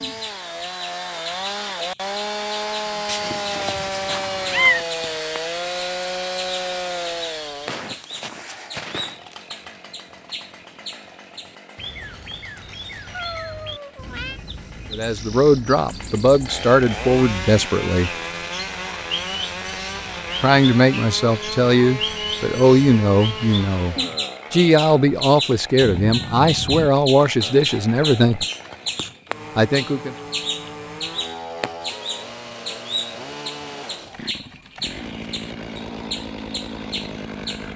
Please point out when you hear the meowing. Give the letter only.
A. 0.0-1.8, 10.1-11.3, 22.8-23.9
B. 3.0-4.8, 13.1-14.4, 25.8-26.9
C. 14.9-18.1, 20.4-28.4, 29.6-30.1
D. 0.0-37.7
B.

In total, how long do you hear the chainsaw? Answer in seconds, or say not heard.
38 s.